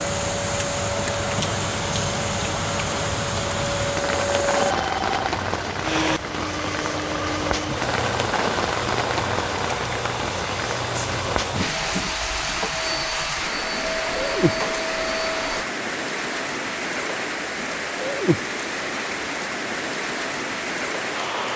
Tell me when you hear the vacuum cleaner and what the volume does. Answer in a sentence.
You can hear the vacuum cleaner from 0.0 to 15.7 s, at a steady volume.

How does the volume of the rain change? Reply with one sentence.
The loudness of the rain stays about the same.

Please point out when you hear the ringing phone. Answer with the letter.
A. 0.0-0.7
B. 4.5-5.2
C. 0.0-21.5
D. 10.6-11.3
B.